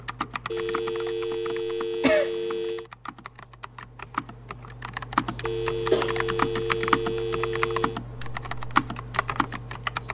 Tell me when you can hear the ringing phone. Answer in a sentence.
You can hear the ringing phone from 0.5 to 2.9 s and from 5.4 to 8.0 s.